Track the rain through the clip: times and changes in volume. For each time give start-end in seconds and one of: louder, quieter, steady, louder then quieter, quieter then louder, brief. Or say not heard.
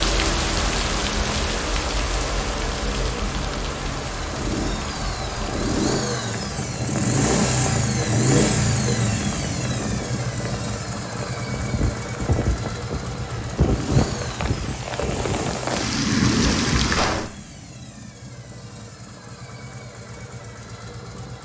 0.0-17.3 quieter then louder.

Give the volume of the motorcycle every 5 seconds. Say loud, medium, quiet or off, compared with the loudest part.
medium, loud, medium, quiet, quiet.